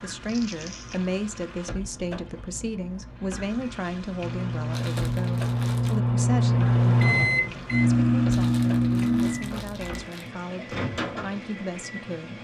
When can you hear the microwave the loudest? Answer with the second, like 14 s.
7 s.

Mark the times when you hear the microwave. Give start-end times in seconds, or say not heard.
4.2-12.2.